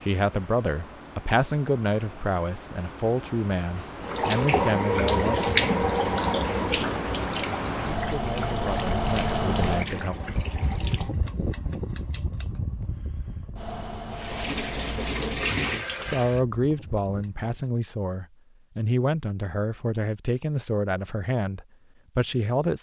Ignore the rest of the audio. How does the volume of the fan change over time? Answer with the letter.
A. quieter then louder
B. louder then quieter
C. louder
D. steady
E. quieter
B.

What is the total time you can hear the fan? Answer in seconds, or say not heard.
18 s.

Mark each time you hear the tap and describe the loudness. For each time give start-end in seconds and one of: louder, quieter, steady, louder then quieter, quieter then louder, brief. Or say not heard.
4.0-11.2 quieter
14.1-16.4 brief.